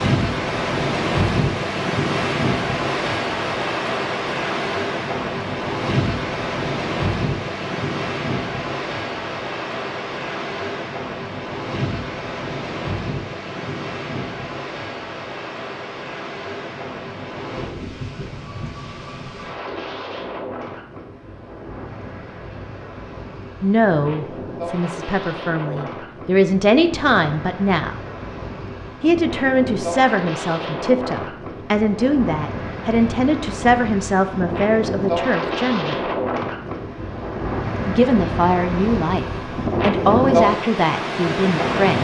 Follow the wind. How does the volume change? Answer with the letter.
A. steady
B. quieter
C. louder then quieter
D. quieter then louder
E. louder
D.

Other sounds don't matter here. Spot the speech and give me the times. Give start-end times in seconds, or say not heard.
23.6-27.9, 29.0-36.0, 37.9-42.0.